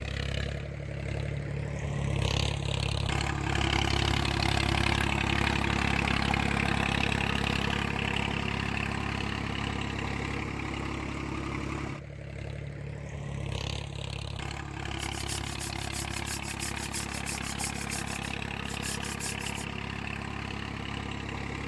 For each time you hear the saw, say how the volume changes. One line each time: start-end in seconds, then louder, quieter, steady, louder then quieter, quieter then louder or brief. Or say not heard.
14.9-19.6 steady.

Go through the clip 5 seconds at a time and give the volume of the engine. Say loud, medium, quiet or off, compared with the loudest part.
loud, loud, medium, medium, medium.